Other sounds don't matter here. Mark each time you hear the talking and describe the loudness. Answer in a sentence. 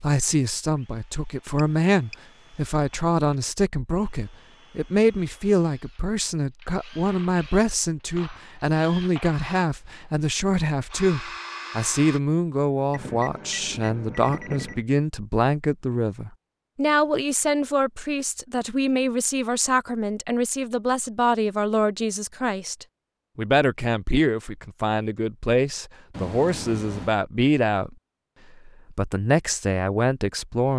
The talking can be heard from 0.0 to 27.9 s, at a steady volume; and briefly from 28.6 to 30.7 s.